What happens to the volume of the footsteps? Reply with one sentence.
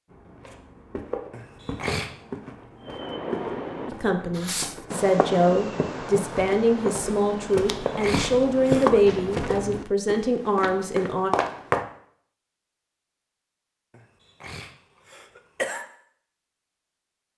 The loudness of the footsteps goes up.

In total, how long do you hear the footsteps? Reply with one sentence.
You can hear the footsteps for 12 seconds altogether.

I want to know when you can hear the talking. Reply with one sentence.
The talking can be heard from 3.9 to 11.3 s.